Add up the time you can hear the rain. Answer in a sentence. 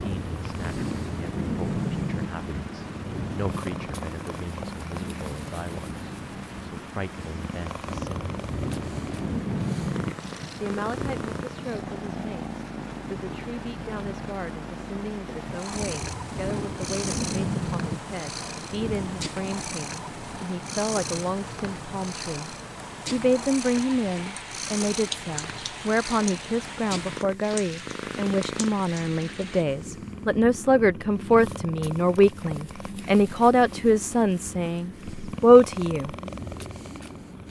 The rain can be heard for 30 seconds in total.